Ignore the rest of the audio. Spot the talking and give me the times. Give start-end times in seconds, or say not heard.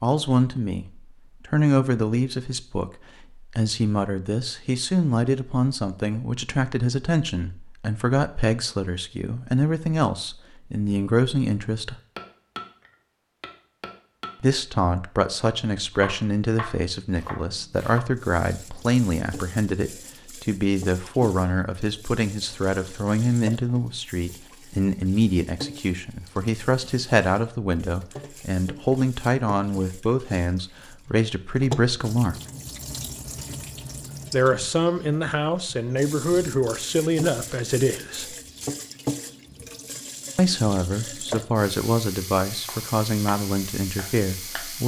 0.0-11.9, 14.4-32.4, 34.3-38.4, 40.4-44.8.